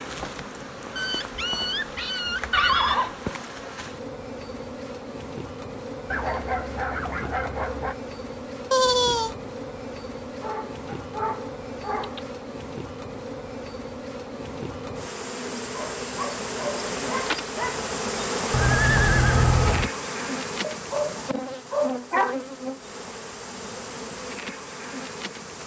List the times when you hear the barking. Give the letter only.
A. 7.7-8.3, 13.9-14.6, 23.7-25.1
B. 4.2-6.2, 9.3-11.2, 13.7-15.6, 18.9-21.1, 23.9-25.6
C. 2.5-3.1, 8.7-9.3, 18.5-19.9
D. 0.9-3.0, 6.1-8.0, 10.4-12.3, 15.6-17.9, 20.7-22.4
D.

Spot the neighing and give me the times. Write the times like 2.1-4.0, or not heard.
2.5-3.1, 8.7-9.3, 18.5-19.9.